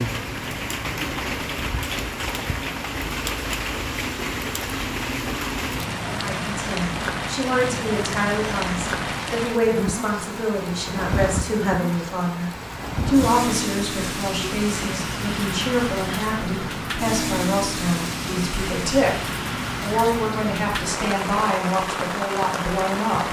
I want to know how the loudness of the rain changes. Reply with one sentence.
The volume of the rain stays about the same.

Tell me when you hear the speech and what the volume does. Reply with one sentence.
You can hear the speech from 6.2 to 23.2 s, at a steady volume.